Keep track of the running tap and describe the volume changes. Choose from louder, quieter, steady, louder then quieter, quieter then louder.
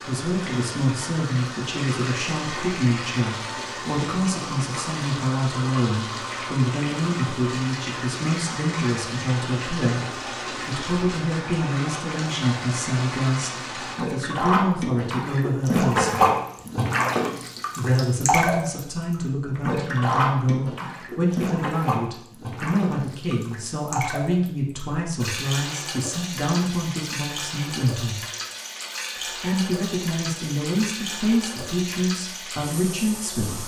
louder then quieter.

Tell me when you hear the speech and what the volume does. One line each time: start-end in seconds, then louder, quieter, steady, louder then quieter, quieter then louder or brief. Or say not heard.
0.0-16.2 steady
17.8-28.2 steady
29.1-33.6 steady.